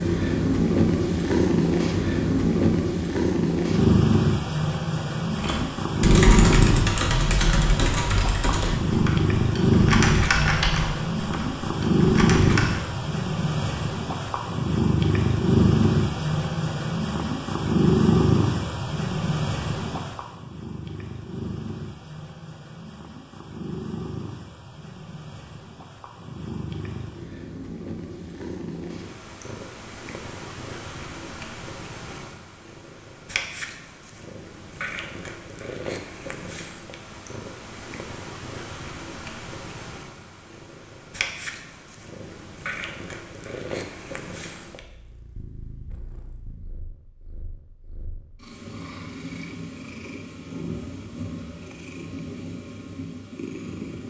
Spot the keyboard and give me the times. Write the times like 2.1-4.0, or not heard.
5.4-12.8.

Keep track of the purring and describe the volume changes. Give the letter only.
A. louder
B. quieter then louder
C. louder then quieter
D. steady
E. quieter
E.